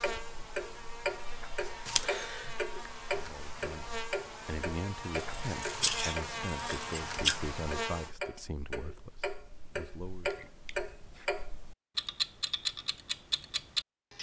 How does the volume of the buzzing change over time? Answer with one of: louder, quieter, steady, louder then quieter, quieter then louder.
louder.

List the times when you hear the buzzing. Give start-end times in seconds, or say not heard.
0.0-8.2.